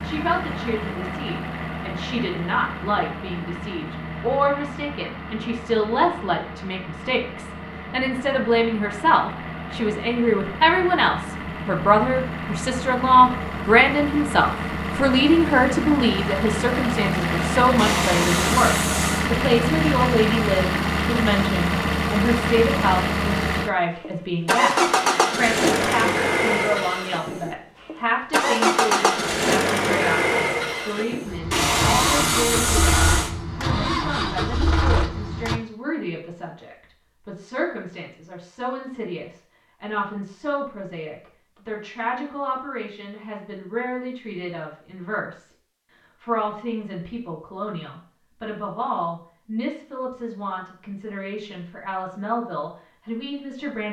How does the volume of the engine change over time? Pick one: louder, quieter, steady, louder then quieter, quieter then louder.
louder.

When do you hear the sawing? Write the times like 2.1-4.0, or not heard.
17.8-19.3, 31.5-33.3.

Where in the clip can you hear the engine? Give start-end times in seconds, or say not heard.
0.0-35.6.